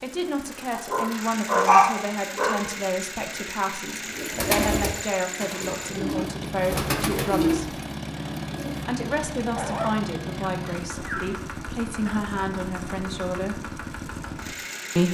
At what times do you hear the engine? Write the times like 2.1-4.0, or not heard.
0.0-15.0.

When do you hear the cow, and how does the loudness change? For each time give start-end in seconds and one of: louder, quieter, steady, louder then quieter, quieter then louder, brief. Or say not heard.
not heard.